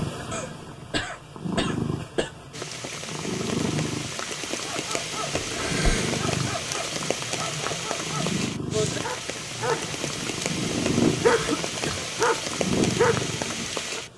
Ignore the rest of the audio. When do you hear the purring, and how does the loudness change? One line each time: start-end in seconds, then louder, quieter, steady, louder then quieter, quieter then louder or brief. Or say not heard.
0.0-14.1 steady.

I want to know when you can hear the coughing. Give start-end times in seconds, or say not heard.
0.3-2.3, 5.3-6.2, 11.2-12.1.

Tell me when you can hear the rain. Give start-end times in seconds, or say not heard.
2.5-14.1.